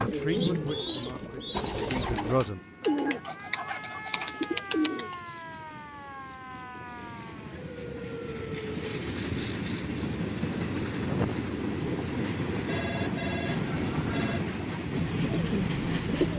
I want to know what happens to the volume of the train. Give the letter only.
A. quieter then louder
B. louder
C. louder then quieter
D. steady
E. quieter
B.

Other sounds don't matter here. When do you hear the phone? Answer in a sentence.
The phone can be heard from 12.7 to 14.4 s.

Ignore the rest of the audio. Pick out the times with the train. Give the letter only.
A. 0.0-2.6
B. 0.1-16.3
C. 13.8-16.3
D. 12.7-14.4
B.